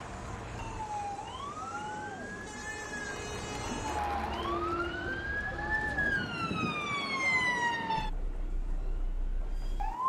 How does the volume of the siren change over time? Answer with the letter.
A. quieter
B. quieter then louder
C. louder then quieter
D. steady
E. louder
C.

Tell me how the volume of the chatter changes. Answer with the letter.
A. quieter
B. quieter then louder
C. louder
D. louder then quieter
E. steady
D.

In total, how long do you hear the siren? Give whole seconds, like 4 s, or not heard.
10 s.